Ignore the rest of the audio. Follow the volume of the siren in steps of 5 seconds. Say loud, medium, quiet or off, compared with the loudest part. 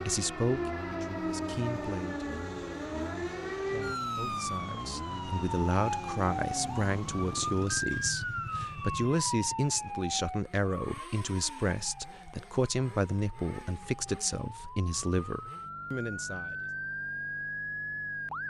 loud, loud, medium, loud.